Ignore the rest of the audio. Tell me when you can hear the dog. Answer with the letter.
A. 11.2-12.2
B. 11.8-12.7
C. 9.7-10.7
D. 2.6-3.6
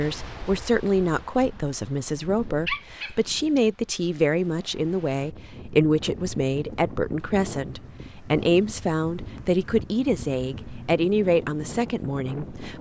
D.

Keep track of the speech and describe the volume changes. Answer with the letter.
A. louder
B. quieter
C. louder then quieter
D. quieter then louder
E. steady
E.